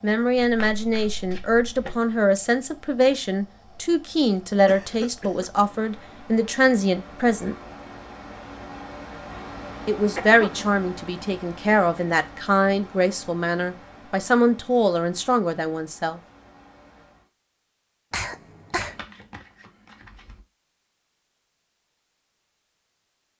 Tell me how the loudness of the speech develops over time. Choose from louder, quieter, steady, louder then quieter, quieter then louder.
steady.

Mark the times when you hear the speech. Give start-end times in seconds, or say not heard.
0.0-7.5, 9.8-16.2.